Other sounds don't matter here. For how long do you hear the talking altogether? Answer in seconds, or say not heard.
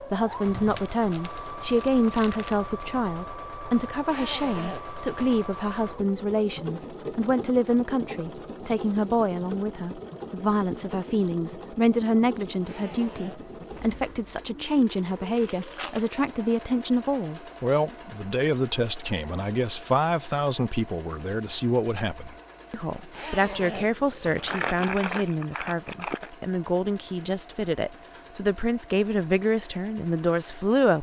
31 s.